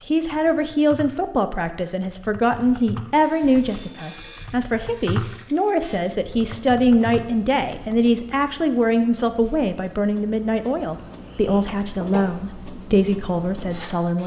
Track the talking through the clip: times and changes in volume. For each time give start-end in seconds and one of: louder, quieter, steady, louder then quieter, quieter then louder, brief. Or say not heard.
0.1-14.2 steady.